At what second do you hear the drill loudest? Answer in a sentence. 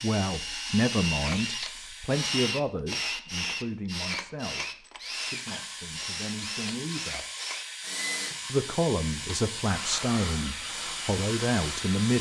The loudest moment of the drill is at 3 seconds.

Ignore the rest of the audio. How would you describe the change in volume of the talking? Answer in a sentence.
The volume of the talking goes down, then up.